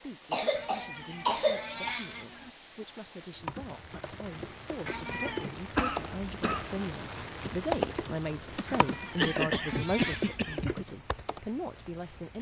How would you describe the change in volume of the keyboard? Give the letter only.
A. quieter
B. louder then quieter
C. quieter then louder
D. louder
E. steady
B.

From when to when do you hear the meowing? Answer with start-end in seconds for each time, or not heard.
0.6-2.5, 4.8-5.5, 8.7-10.6.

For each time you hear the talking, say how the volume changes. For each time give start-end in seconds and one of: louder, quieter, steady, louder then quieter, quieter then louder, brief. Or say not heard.
0.0-12.3 louder.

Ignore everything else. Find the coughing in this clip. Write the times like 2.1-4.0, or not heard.
0.3-1.9, 5.8-6.8, 9.2-10.8.